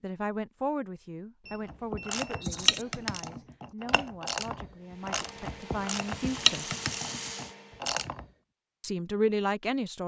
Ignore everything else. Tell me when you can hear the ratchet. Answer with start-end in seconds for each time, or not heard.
1.6-8.2.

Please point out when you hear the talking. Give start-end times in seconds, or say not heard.
0.0-6.7, 8.8-10.0.